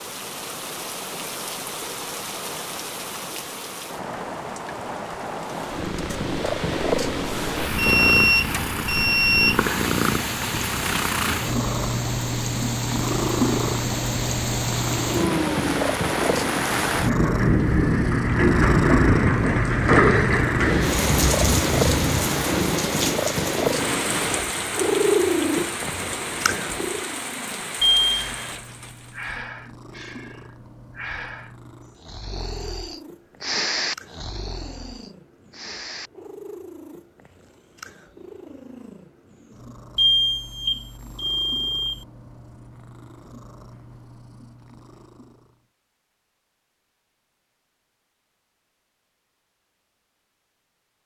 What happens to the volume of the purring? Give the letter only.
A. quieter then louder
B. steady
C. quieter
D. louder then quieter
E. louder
C.